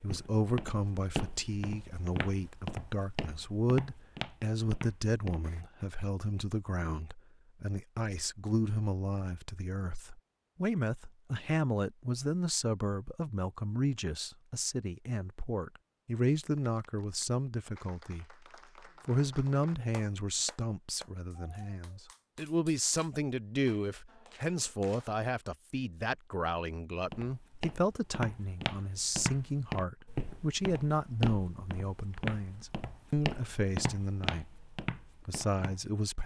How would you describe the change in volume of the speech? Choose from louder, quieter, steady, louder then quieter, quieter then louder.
steady.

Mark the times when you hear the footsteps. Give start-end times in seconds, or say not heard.
0.0-5.7, 27.1-35.9.